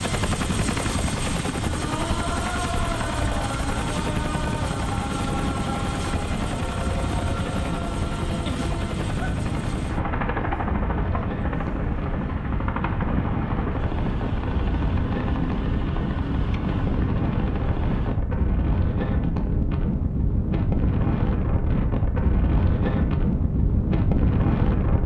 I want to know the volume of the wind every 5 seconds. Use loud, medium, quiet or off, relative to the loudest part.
medium, medium, medium, loud, loud.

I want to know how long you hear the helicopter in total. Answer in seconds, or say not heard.
18 s.